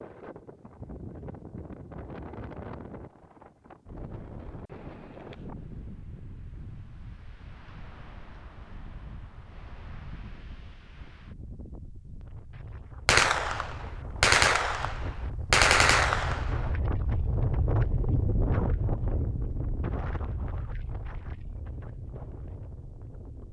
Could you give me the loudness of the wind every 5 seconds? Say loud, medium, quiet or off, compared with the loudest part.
medium, quiet, quiet, loud, medium.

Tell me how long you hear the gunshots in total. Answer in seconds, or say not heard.
4 s.